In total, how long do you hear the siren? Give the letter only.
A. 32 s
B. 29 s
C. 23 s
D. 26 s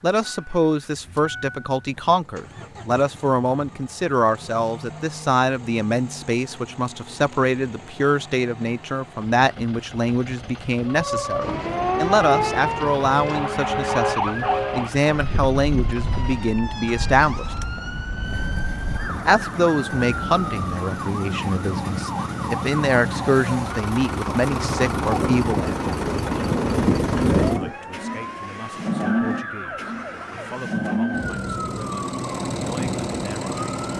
C.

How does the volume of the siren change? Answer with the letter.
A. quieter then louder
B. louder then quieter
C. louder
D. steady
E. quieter
E.